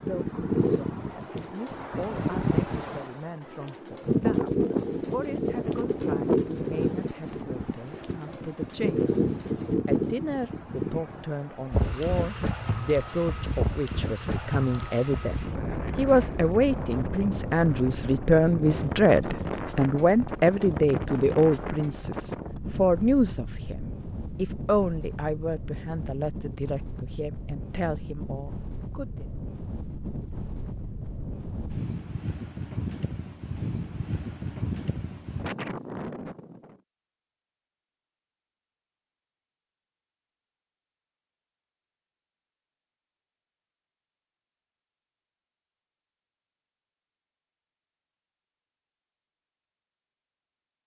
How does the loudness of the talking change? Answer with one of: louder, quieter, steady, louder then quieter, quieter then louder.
louder then quieter.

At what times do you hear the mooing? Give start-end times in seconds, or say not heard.
not heard.